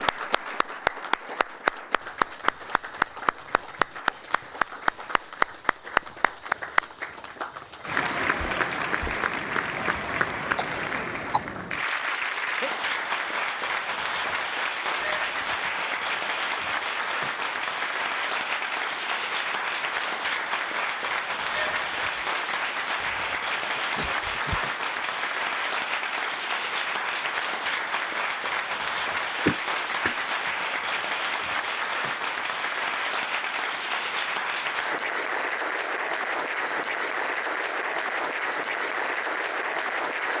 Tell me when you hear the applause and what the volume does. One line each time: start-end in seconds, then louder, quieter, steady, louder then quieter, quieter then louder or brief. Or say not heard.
0.0-40.3 steady.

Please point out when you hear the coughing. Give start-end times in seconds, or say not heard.
9.9-11.4, 23.6-24.7, 29.4-30.2.